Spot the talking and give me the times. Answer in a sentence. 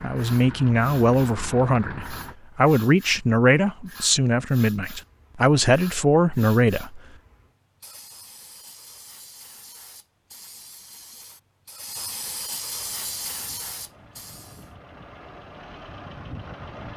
The talking can be heard from 0.0 to 7.0 s.